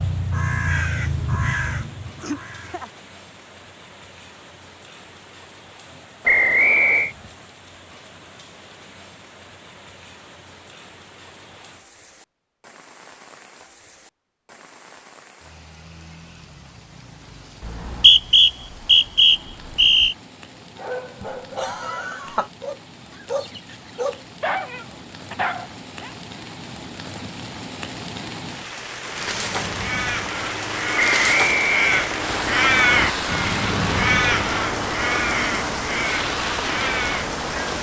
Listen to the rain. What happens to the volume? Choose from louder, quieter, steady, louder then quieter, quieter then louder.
louder.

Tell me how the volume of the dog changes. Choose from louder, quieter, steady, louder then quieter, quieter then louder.
louder.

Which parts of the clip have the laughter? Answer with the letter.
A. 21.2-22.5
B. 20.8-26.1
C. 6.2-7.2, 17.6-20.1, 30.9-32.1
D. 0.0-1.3
A.